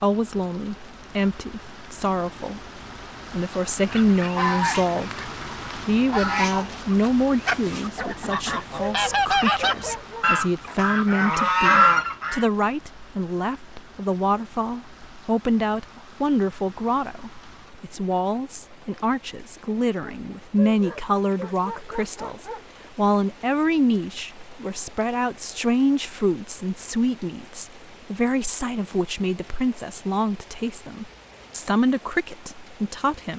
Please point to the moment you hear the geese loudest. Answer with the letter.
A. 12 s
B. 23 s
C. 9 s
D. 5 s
A.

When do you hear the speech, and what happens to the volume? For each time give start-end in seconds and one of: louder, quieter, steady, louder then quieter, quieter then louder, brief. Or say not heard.
0.0-2.6 brief
3.3-33.3 steady.